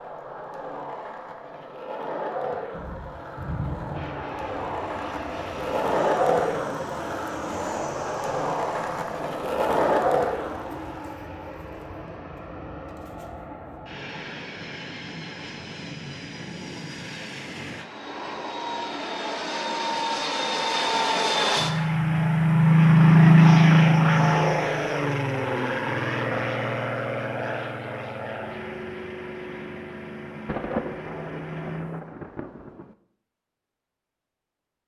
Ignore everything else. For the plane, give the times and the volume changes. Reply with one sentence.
The plane can be heard from 3.9 to 32.0 s, getting louder then quieter.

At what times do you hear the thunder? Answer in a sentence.
The thunder can be heard from 2.7 to 4.2 s and from 30.4 to 32.9 s.